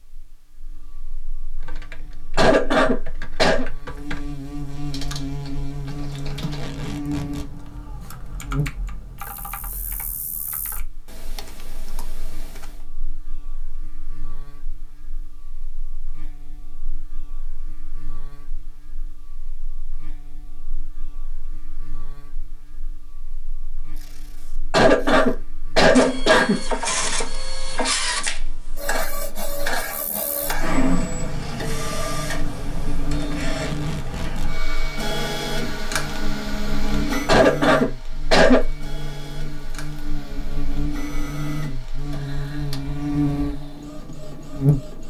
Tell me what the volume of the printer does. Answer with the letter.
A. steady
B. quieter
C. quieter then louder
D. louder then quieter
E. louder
B.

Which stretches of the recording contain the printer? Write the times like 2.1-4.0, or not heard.
25.9-45.0.